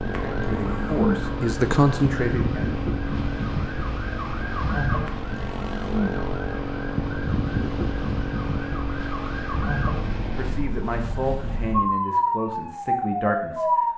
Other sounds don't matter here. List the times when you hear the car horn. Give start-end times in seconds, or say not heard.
not heard.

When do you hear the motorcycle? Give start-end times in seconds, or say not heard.
0.0-10.7.